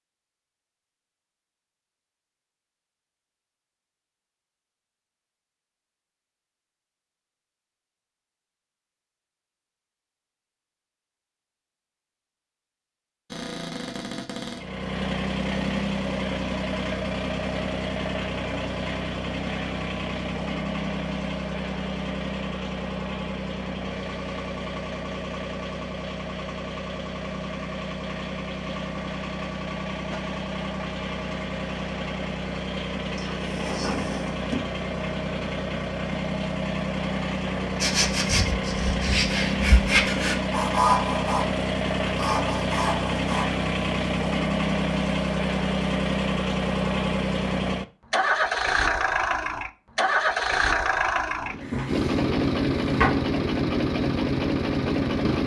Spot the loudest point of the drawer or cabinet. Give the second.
53 s.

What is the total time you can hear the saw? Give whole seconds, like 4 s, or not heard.
6 s.